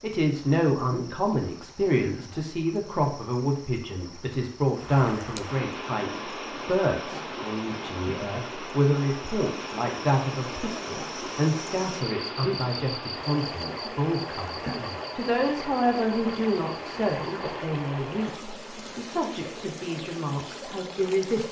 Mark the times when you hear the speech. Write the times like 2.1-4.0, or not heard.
0.0-21.4.